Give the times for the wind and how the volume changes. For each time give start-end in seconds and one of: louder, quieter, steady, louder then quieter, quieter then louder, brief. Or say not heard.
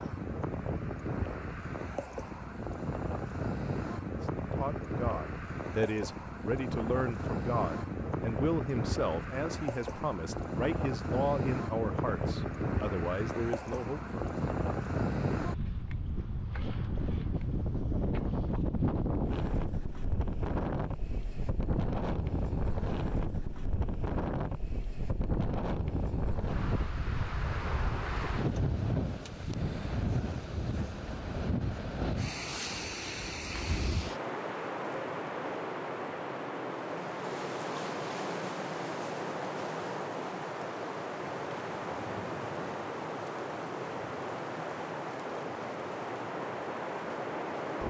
0.0-47.8 steady.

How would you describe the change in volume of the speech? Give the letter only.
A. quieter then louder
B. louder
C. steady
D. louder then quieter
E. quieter
C.